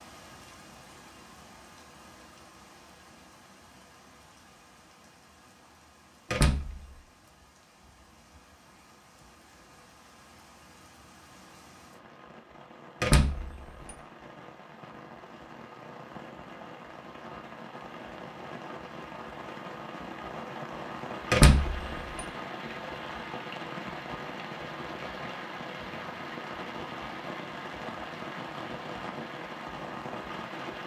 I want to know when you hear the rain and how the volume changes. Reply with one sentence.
You can hear the rain from 0.0 to 30.8 s, getting louder.